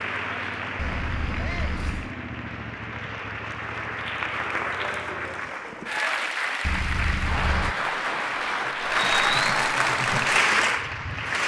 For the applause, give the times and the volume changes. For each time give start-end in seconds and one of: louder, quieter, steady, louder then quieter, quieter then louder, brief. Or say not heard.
0.0-11.4 louder.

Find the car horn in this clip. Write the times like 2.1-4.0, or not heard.
0.8-2.1, 6.6-7.8.